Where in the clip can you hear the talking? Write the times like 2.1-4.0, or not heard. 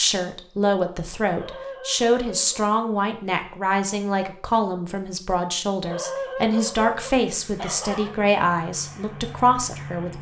0.0-10.1.